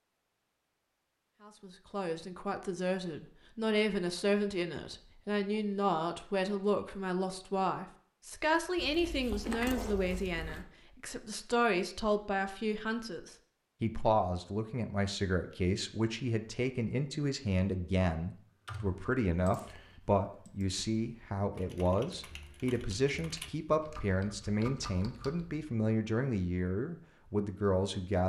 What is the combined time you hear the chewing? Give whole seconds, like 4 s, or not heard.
2 s.